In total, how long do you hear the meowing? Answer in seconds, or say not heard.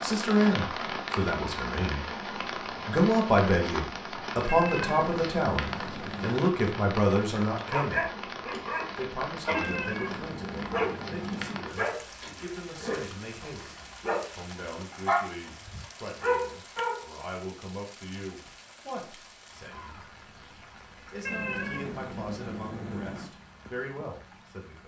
6 s.